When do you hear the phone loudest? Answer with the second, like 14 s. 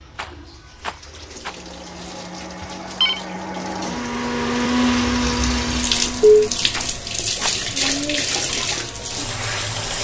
6 s.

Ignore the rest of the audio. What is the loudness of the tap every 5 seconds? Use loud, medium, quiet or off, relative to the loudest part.
quiet, loud.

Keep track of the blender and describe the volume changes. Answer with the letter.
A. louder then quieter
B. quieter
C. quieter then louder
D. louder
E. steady
A.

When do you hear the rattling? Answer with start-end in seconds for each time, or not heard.
0.1-1.6, 6.7-7.6.